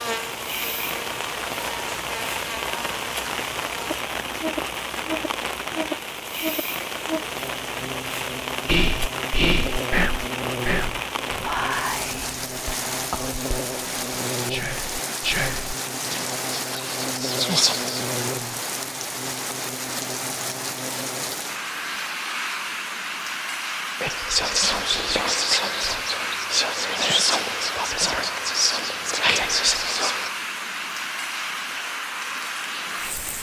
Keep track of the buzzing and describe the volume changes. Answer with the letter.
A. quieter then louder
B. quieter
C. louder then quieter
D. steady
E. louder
D.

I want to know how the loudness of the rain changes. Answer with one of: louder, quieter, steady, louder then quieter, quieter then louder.
steady.